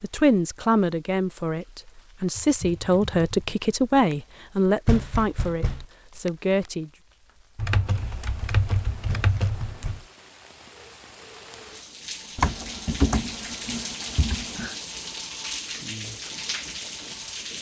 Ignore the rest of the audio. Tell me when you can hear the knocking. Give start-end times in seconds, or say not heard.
4.8-5.8, 9.1-10.1.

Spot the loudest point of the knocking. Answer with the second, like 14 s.
5 s.